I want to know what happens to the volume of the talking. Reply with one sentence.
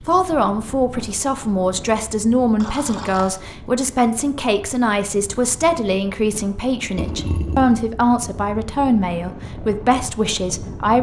The loudness of the talking stays about the same.